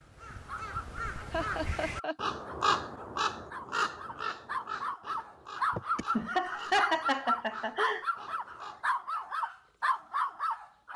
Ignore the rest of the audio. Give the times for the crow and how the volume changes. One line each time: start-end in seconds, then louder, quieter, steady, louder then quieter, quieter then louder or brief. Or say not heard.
0.0-8.9 louder then quieter.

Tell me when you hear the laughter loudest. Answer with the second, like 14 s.
7 s.